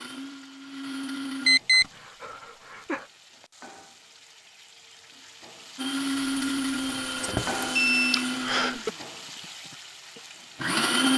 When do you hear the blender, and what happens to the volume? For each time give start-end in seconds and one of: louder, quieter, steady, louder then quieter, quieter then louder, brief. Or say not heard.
0.0-1.6 brief
5.8-11.1 quieter then louder.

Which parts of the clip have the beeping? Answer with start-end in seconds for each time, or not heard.
1.4-1.9, 6.4-8.2.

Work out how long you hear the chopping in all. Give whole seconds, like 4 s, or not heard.
not heard.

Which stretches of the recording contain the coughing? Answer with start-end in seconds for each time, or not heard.
1.7-3.1, 8.1-8.9.